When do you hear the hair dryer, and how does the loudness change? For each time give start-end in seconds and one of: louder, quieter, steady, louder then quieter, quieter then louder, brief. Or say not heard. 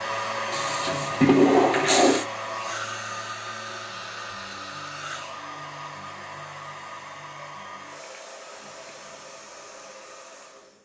0.0-10.7 quieter.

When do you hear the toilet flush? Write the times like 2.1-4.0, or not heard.
0.5-2.2.